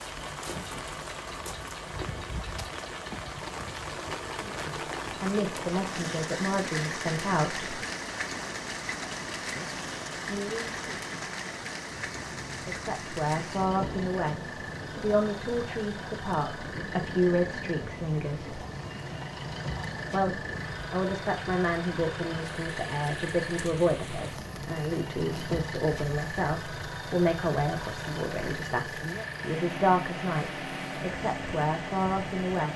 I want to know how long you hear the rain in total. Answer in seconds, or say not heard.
33 s.